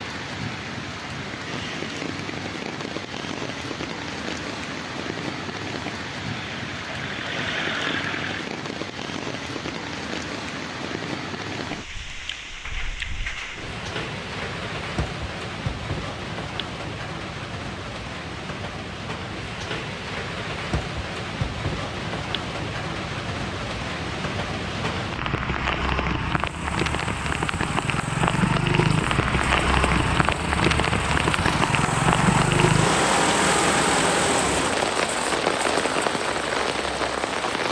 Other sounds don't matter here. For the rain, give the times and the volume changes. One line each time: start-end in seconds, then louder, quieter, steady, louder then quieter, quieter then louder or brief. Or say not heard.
0.0-37.6 louder.